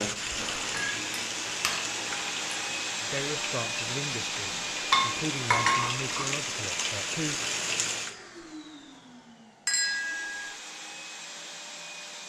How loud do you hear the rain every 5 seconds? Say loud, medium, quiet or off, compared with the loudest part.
loud, loud, off.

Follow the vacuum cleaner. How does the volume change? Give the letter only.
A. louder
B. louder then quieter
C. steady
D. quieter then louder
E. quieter
E.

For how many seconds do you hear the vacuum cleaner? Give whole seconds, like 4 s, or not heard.
12 s.